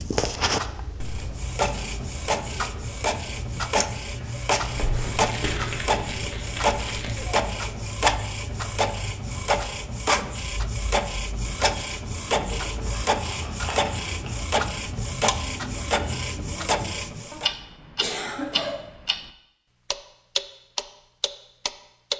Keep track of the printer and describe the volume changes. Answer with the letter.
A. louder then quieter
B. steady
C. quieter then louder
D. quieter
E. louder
B.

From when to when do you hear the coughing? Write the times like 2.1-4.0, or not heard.
18.0-18.9.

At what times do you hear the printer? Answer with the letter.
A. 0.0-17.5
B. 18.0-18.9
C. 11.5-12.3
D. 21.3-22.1
A.